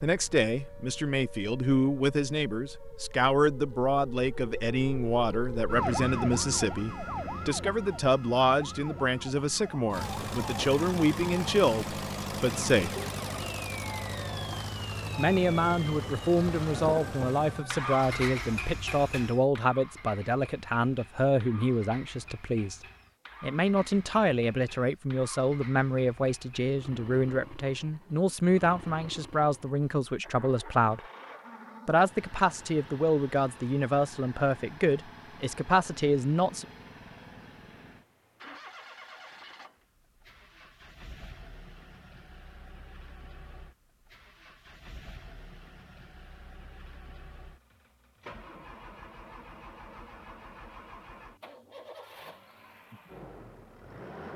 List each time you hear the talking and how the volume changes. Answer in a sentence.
The talking can be heard from 0.0 to 12.9 s, at a steady volume; from 15.2 to 22.8 s, at a steady volume; from 23.4 to 31.0 s, at a steady volume; and from 31.9 to 36.6 s, at a steady volume.